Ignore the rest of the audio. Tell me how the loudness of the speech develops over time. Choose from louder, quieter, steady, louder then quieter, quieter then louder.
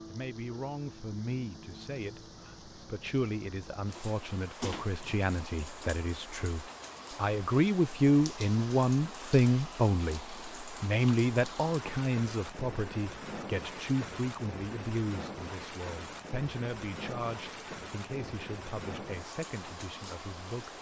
louder then quieter.